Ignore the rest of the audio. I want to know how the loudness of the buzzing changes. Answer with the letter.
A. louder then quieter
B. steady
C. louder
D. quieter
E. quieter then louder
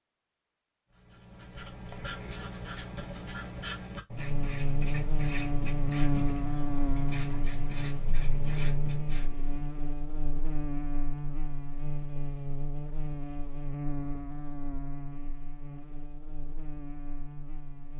D.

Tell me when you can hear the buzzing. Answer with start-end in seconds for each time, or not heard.
4.1-17.9.